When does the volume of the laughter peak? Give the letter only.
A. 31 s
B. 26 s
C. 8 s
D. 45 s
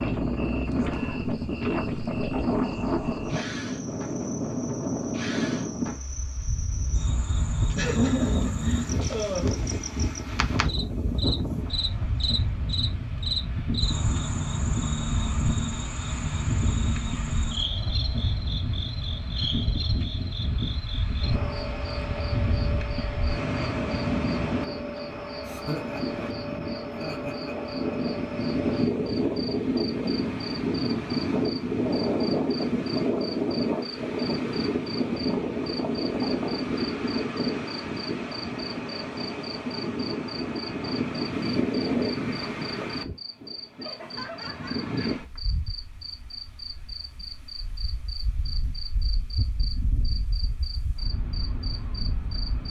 C.